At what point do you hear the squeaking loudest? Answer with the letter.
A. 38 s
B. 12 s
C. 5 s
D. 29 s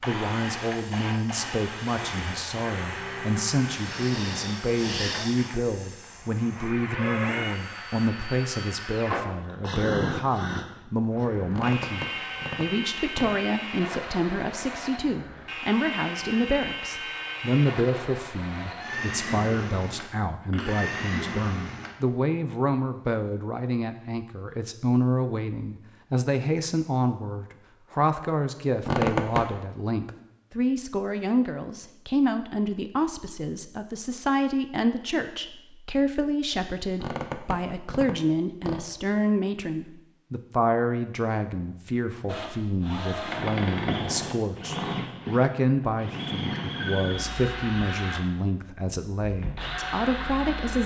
D.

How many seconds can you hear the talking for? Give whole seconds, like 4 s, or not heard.
51 s.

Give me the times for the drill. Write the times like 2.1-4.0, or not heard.
0.0-22.0, 42.2-50.8.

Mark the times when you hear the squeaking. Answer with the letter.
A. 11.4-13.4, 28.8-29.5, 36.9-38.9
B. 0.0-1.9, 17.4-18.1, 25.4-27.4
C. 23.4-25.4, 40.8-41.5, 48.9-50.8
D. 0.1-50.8
A.